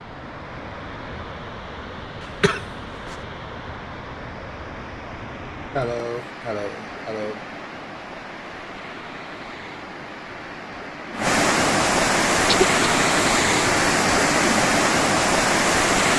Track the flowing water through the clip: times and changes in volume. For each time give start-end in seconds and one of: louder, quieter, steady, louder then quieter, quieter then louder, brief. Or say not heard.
0.0-16.1 louder.